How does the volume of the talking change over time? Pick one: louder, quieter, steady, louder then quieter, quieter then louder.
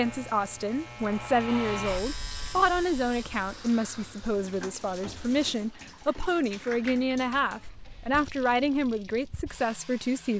steady.